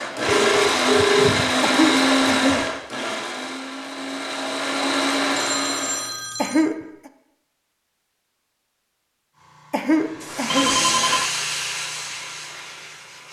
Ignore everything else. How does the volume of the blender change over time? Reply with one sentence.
The volume of the blender goes down, then up.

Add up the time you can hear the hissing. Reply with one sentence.
The hissing can be heard for 4 seconds in total.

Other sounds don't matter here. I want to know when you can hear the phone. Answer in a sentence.
The phone can be heard from 0.2 to 2.7 s, from 5.3 to 6.7 s and from 10.4 to 11.3 s.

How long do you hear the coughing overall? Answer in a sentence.
The coughing can be heard for 3 seconds in total.